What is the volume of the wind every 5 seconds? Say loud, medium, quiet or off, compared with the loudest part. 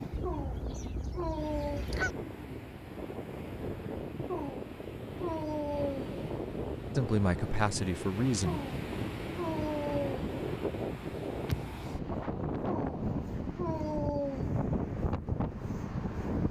medium, loud, loud, loud.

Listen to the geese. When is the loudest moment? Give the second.
2 s.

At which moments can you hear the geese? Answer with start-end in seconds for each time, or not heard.
0.1-2.1.